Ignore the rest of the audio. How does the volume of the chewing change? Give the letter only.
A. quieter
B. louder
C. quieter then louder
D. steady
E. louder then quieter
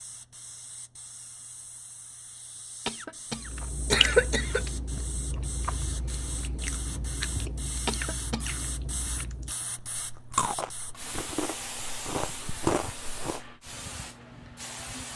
C.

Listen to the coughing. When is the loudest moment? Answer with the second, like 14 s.
4 s.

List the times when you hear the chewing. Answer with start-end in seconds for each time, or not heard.
3.4-13.6.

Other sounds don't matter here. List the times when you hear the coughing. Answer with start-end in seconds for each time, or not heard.
2.9-4.7, 7.8-8.5.